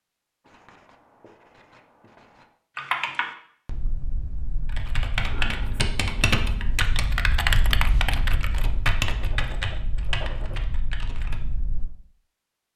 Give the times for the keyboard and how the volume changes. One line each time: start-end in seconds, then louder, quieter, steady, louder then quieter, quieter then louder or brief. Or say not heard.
2.8-11.9 louder then quieter.